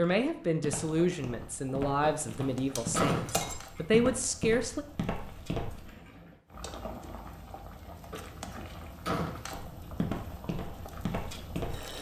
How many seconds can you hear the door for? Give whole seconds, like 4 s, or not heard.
3 s.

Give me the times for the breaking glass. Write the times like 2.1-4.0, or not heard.
2.8-3.6.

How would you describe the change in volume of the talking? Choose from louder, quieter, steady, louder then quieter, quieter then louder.
quieter then louder.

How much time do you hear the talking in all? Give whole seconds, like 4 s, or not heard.
5 s.